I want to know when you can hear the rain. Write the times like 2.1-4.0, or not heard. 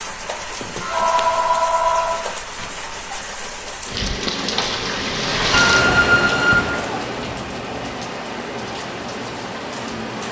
0.0-10.2.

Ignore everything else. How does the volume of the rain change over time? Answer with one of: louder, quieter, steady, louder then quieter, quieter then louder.
louder then quieter.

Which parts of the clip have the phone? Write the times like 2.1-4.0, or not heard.
0.8-2.2, 5.5-6.7.